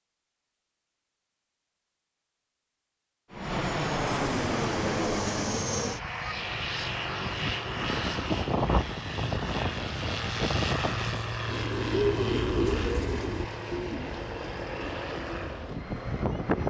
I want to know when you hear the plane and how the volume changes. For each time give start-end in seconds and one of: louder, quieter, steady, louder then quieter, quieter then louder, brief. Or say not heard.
3.3-16.6 quieter.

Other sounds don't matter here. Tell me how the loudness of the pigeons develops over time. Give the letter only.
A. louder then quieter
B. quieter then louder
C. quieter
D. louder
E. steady
C.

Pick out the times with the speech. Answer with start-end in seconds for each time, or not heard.
not heard.